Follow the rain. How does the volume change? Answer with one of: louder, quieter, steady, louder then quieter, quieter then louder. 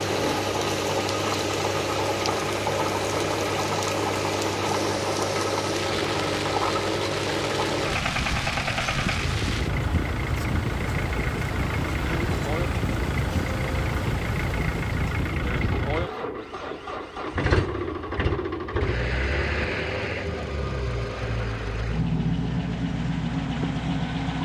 steady.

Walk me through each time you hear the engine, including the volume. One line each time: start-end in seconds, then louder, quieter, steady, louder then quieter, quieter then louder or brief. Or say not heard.
0.0-24.4 steady.